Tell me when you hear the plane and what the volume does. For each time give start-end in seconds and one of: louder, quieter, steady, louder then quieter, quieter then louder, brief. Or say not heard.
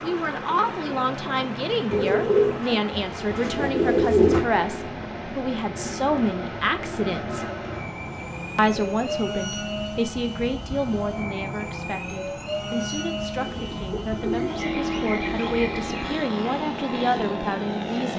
0.0-18.1 louder.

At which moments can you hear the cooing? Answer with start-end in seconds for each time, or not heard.
1.9-4.5, 13.3-16.2.